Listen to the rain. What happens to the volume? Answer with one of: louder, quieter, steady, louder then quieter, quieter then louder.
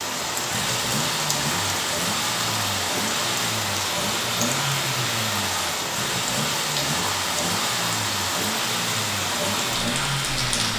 steady.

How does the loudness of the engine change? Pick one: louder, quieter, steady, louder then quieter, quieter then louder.
steady.